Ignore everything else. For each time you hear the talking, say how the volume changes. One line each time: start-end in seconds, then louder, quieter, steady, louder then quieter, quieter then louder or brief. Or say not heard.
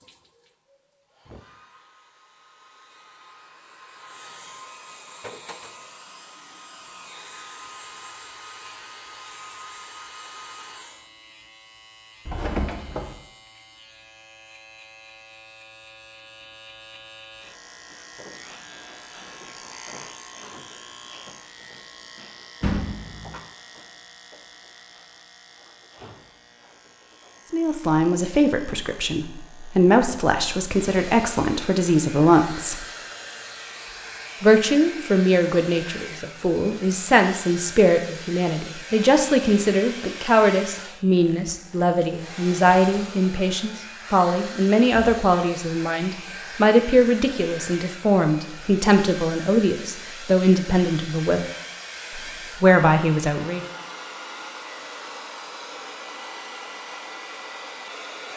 27.5-32.9 quieter then louder
34.4-51.5 steady
52.1-53.6 brief.